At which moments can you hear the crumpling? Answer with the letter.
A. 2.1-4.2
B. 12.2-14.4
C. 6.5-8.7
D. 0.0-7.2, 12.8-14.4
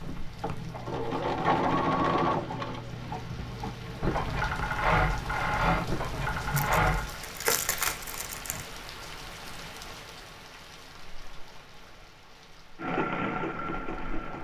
C.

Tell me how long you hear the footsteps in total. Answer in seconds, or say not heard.
not heard.